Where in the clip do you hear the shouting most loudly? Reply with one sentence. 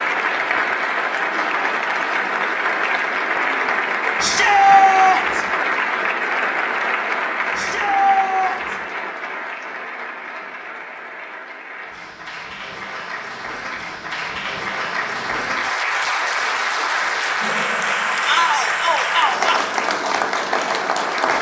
The loudest moment of the shouting is at 5 seconds.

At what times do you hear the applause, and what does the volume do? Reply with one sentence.
You can hear the applause from 0.0 to 21.3 s, getting quieter then louder.